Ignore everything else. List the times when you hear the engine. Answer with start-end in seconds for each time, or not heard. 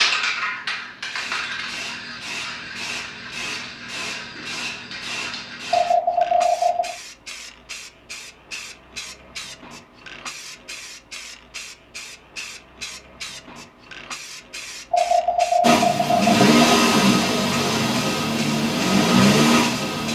15.6-20.0.